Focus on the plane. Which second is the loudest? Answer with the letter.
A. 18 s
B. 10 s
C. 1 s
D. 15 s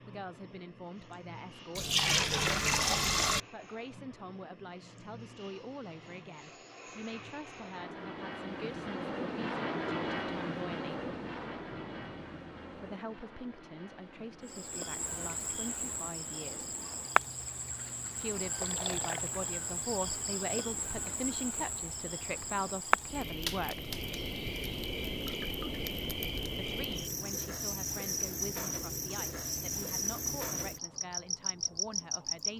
B.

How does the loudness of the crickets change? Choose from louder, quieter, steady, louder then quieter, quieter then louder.
steady.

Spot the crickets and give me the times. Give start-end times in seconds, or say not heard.
14.4-32.5.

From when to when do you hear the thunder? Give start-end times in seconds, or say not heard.
11.0-12.9.